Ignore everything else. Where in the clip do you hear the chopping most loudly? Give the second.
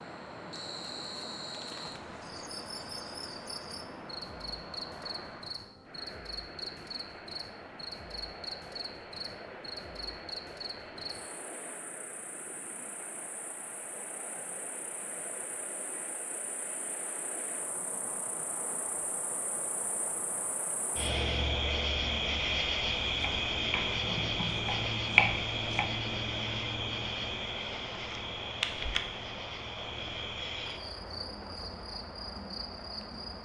25 s.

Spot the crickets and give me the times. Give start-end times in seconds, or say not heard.
0.0-33.4.